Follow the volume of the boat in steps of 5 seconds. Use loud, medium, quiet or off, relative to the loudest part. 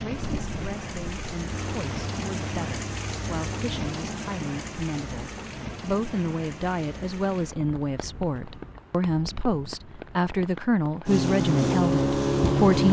quiet, off, loud.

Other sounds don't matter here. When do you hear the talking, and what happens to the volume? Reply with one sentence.
The talking can be heard from 0.0 to 12.8 s, getting louder.